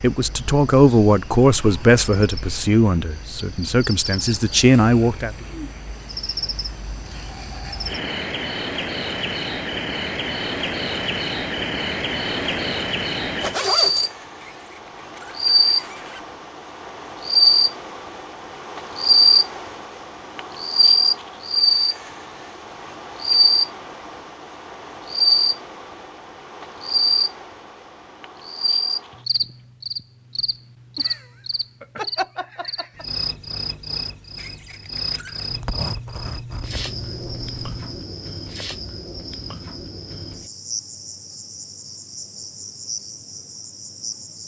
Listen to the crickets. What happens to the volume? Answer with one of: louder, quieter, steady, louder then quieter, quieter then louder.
louder then quieter.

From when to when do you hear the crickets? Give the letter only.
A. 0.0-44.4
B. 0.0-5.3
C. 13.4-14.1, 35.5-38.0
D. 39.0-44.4
A.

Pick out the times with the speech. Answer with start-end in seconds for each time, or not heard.
0.0-5.3.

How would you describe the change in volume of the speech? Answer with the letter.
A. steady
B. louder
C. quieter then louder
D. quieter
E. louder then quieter
C.